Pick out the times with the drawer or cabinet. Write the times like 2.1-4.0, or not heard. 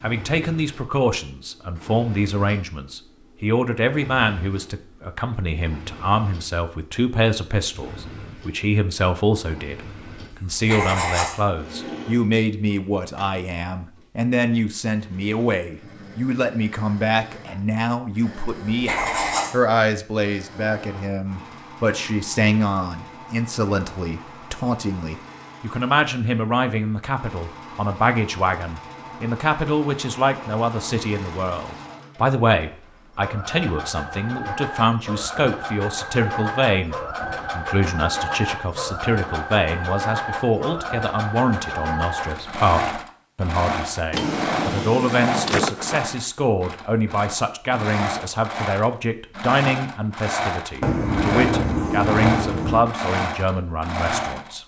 44.1-46.0.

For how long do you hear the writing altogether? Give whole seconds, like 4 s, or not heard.
4 s.